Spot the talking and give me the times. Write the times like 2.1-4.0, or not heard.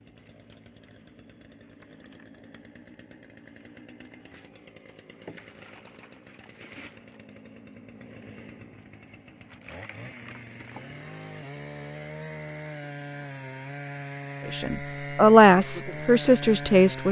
14.4-17.0.